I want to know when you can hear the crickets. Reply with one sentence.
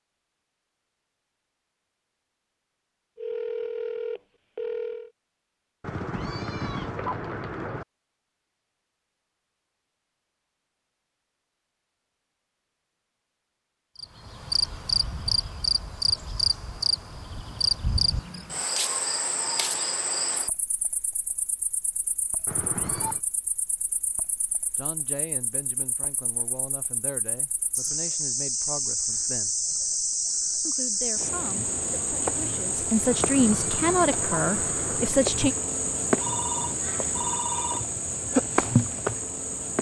You can hear the crickets from 13.9 to 39.7 s.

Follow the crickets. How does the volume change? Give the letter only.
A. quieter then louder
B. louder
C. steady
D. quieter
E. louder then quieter
A.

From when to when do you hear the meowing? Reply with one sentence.
The meowing can be heard from 5.8 to 7.8 s, from 22.4 to 23.2 s and from 33.0 to 35.1 s.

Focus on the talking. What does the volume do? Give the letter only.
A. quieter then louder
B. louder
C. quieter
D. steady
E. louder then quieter
B.